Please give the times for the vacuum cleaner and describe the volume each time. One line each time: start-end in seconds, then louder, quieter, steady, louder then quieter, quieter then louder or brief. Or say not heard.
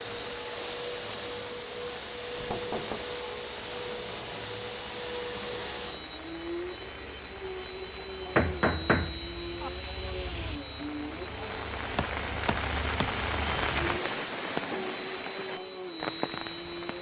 0.0-16.9 steady.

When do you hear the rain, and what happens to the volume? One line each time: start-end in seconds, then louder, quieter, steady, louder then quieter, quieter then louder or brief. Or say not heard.
0.0-16.9 louder.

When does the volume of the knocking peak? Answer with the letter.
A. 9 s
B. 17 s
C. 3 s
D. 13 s
A.